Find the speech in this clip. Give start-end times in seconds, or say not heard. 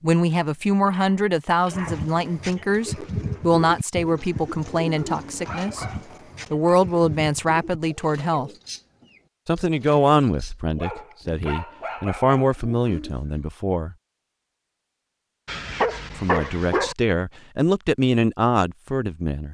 0.0-5.8, 6.5-8.5, 9.4-13.9, 16.1-19.5.